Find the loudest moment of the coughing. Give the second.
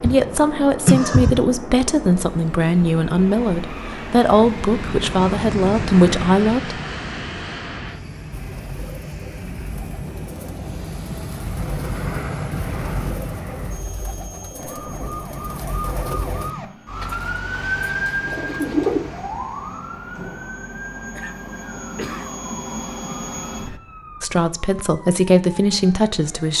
1 s.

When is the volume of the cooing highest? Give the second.
19 s.